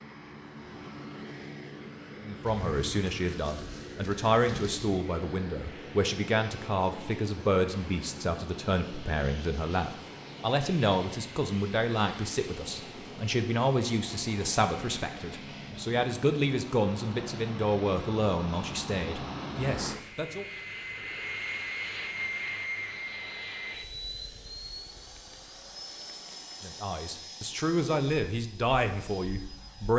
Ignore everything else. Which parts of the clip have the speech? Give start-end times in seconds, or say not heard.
2.2-20.4, 26.6-29.9.